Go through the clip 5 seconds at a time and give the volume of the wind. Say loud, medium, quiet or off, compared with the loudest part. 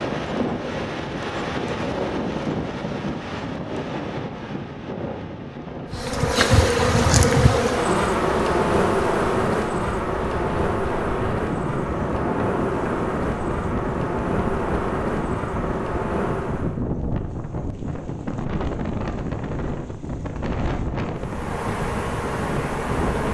loud, medium, loud, loud, loud.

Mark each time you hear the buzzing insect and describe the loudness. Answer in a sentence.
The buzzing insect can be heard from 5.9 to 16.8 s, getting quieter; and briefly from 21.1 to 23.3 s.